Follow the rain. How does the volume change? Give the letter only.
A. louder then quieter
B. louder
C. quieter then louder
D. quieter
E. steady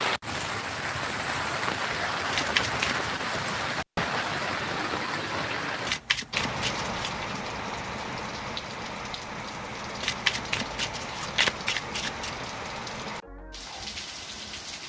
D.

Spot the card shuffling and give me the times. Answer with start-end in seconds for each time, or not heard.
2.3-3.0, 5.8-7.2, 10.0-12.3.